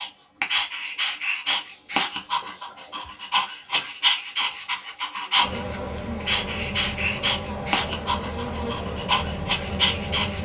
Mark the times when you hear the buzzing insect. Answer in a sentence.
The buzzing insect can be heard from 5.4 to 10.3 s.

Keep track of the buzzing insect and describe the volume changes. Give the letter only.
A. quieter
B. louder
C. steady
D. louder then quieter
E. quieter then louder
C.